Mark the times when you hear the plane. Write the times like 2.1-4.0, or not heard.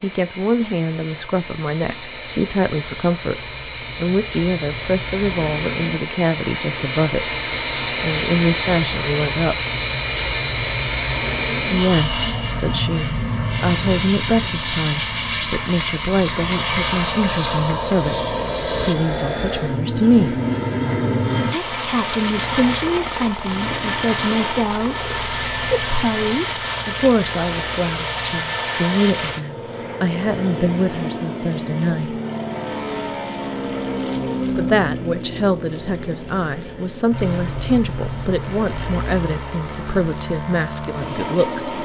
0.0-41.8.